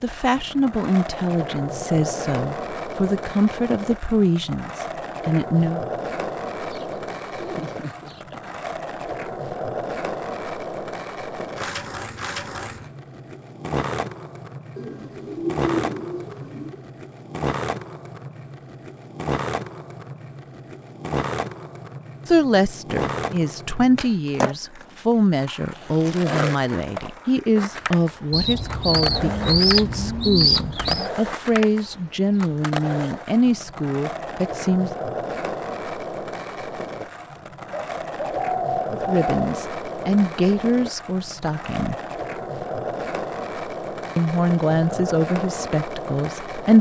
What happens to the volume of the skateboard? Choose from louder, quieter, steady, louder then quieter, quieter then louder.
steady.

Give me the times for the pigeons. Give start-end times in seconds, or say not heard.
6.6-8.6, 14.8-16.8, 28.3-31.1, 37.7-39.4.